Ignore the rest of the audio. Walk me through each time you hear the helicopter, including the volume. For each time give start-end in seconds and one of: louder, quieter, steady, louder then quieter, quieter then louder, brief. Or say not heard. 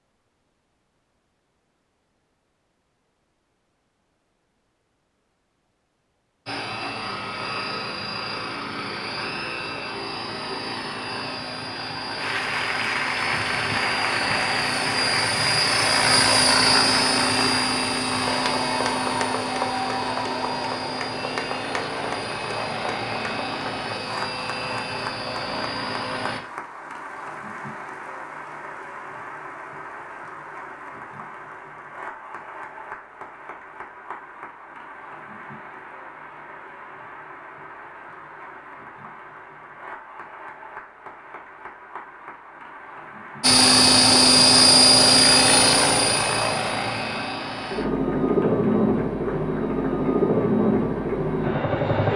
6.5-26.4 louder then quieter
43.4-52.1 quieter.